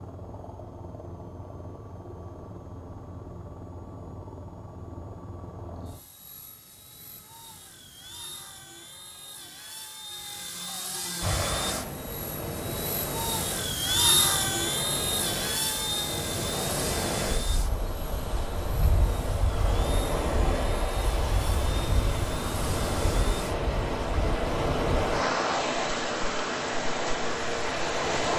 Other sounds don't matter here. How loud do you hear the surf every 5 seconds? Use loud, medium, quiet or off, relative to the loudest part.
off, off, medium, medium, loud, loud.